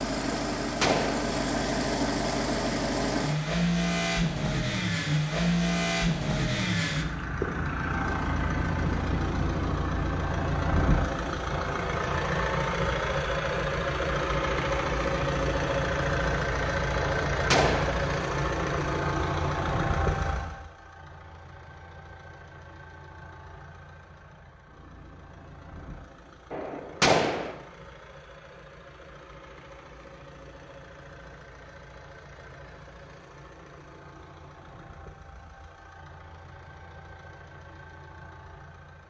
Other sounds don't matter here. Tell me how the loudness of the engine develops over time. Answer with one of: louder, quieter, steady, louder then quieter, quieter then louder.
quieter.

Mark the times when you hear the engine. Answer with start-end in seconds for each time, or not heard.
0.0-39.0.